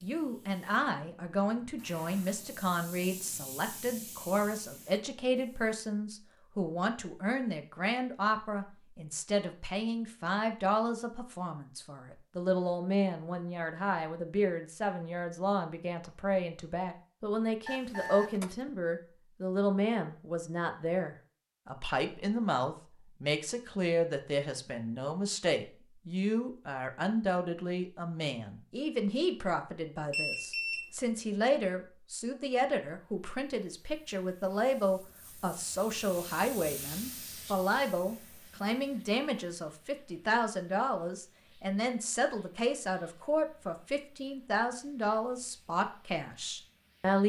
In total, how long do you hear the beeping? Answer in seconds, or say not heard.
2 s.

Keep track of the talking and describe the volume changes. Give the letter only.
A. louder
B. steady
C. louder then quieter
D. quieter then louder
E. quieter
B.